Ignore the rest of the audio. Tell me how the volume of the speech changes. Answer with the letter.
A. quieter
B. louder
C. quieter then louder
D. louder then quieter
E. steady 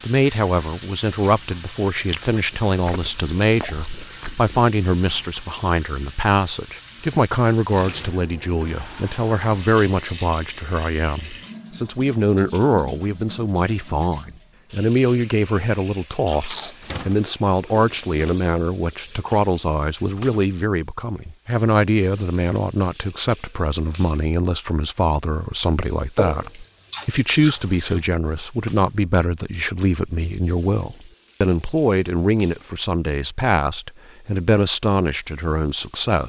E.